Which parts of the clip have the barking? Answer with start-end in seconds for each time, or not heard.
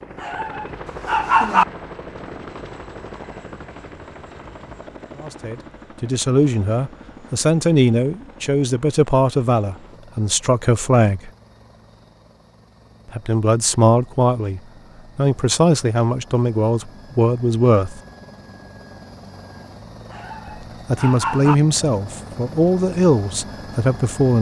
0.2-1.6, 20.1-21.6.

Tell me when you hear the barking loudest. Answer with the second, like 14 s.
1 s.